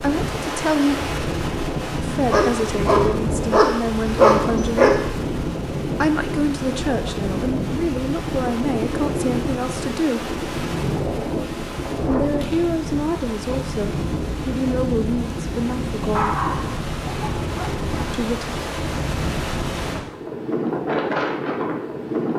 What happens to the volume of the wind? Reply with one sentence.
The volume of the wind stays about the same.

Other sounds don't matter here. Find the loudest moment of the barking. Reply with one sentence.
The loudest moment of the barking is at 4 seconds.